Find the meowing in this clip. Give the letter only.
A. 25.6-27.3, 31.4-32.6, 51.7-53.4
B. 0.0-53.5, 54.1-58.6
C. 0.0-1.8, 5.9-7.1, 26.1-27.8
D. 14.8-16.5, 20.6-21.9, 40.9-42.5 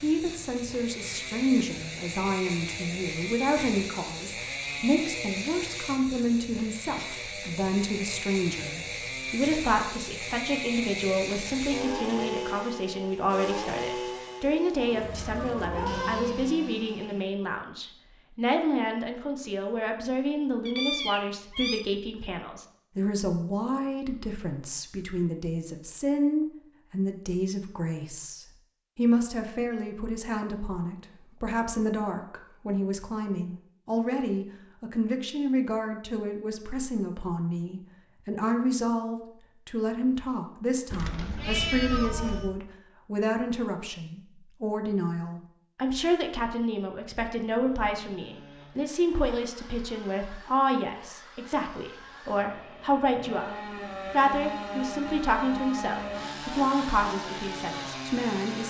D.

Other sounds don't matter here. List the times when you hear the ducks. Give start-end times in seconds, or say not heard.
not heard.